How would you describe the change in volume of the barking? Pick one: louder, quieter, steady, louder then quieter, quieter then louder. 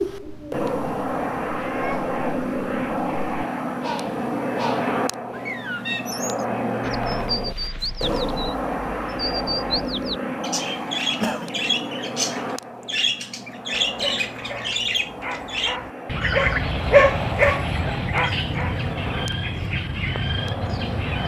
louder then quieter.